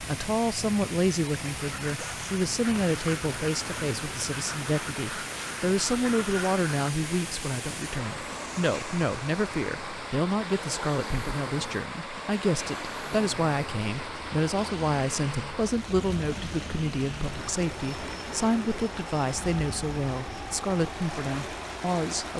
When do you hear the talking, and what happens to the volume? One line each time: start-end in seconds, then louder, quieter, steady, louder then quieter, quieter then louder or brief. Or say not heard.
0.0-22.3 steady.